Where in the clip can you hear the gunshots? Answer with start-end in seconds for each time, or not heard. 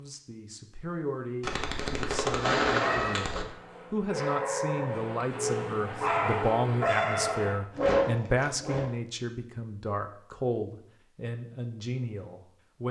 1.4-3.5.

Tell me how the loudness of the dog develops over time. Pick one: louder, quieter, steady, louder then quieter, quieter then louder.
louder.